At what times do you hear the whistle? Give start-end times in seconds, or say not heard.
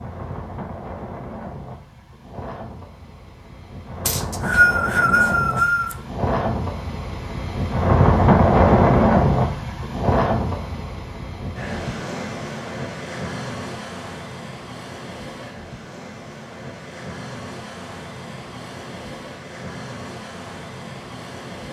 4.0-6.0.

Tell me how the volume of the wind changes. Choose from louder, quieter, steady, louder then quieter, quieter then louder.
louder then quieter.